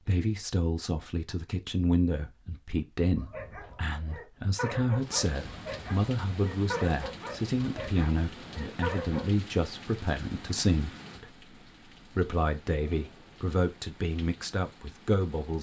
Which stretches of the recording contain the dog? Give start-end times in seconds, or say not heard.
3.1-9.3.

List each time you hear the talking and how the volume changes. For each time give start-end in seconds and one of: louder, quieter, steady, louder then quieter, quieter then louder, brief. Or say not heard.
0.0-15.5 steady.